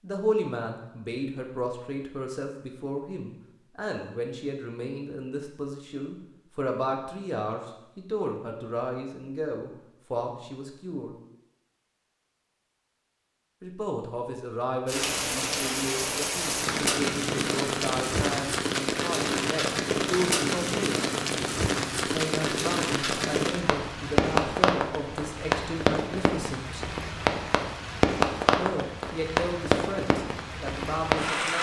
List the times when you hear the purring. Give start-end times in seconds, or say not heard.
not heard.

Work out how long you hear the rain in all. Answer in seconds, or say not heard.
17 s.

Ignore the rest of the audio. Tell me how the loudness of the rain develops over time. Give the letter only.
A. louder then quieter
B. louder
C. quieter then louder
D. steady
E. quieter
D.